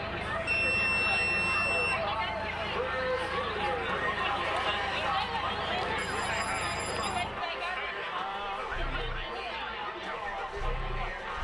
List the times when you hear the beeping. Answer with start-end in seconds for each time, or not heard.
0.5-1.9, 6.0-7.2.